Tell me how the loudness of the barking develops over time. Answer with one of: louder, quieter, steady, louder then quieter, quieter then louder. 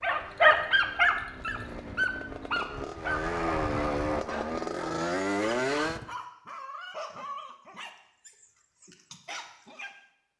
quieter.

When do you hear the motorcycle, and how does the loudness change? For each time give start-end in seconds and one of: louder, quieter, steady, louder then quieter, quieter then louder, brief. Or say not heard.
0.0-6.0 louder.